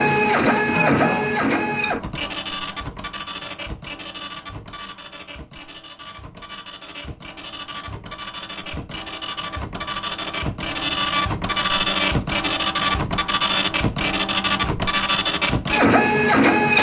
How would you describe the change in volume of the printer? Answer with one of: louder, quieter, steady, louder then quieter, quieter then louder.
quieter then louder.